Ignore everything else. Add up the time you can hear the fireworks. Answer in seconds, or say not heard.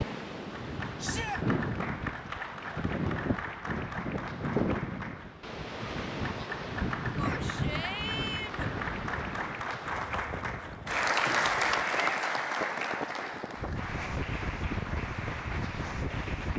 not heard.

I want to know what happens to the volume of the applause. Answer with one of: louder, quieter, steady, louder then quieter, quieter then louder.
louder then quieter.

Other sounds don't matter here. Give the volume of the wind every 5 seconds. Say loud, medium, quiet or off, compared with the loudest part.
loud, loud, medium, loud.